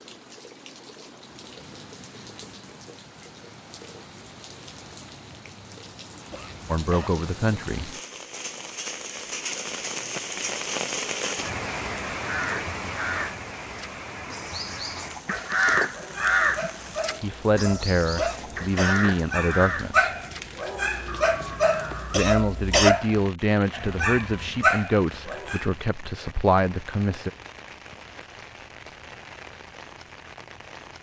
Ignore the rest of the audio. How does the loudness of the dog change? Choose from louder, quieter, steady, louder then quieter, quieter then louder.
louder.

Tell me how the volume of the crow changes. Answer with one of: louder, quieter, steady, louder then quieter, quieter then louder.
louder then quieter.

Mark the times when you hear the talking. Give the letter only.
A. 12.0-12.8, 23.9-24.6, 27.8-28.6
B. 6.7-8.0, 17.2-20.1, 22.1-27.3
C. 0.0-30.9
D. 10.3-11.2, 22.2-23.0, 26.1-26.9
B.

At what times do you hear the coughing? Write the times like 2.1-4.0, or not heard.
6.3-7.1, 18.1-18.9, 22.1-22.9.